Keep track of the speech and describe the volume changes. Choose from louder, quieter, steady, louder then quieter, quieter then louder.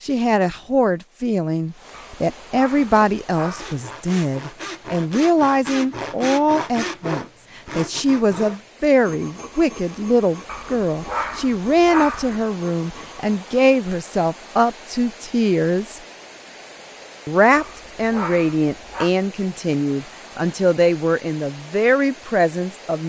steady.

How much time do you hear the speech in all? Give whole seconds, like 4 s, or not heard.
22 s.